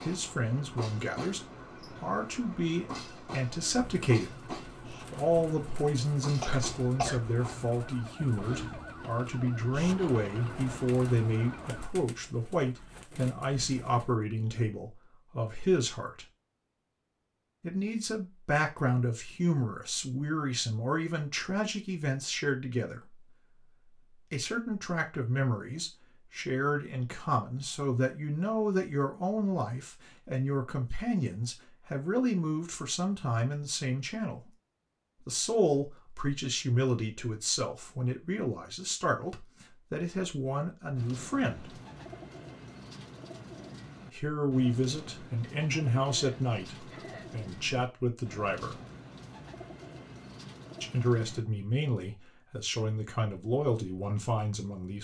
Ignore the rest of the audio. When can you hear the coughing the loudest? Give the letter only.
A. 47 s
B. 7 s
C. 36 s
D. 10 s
B.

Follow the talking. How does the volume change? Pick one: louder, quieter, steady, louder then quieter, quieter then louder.
steady.